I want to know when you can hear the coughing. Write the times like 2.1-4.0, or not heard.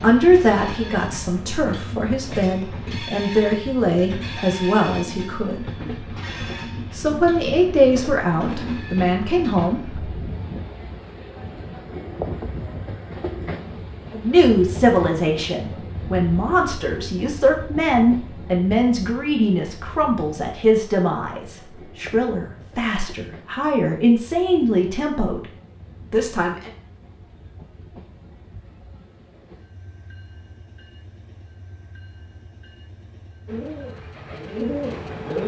not heard.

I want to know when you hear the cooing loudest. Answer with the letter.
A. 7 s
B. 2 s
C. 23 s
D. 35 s
D.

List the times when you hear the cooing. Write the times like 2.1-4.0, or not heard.
33.5-35.4.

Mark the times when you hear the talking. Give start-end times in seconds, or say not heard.
0.0-5.7, 6.9-10.3, 14.1-25.4, 26.1-26.7.